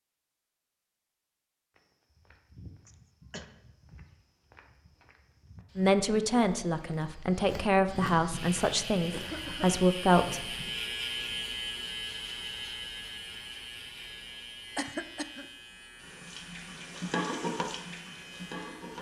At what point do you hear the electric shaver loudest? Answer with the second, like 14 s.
11 s.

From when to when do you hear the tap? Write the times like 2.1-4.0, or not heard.
15.9-18.9.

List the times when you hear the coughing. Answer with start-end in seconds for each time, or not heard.
2.9-3.5, 9.1-9.7, 14.8-15.4.